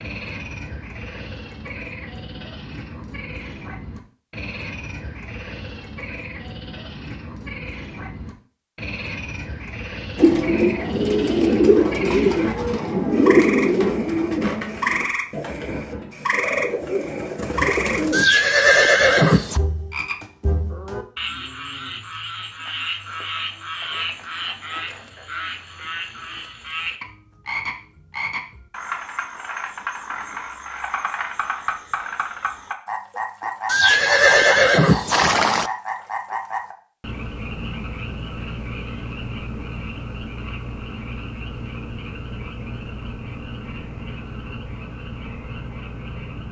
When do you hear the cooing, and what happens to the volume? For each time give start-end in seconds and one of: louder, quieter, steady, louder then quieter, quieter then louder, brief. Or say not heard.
10.2-18.2 quieter then louder.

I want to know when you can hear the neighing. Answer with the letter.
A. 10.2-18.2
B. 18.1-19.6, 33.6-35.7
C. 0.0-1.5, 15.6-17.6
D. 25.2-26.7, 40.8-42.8
B.